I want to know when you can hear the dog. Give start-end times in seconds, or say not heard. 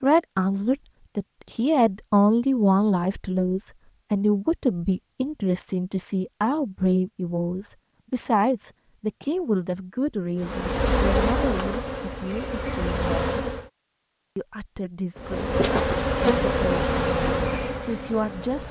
not heard.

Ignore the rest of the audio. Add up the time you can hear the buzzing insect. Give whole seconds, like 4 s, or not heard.
7 s.